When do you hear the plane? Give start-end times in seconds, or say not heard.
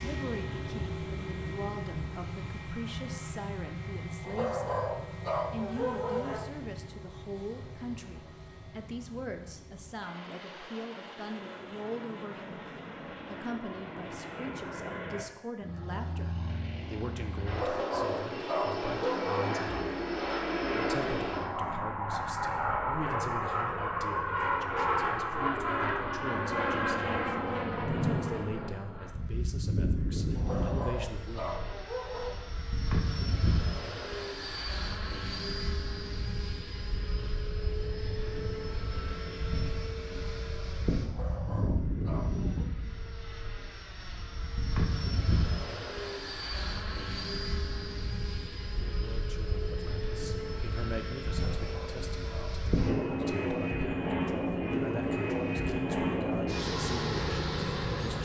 0.0-58.1.